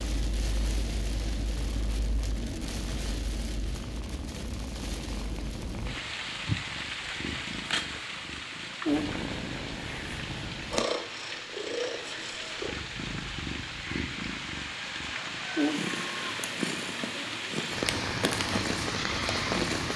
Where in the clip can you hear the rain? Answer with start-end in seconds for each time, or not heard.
0.0-19.9.